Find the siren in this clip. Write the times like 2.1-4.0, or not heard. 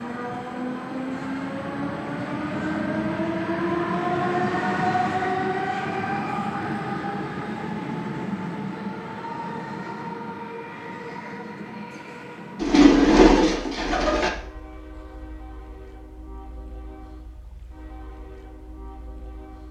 not heard.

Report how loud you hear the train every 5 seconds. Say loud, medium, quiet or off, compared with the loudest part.
loud, loud, medium, quiet.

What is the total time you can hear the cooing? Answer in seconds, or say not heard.
2 s.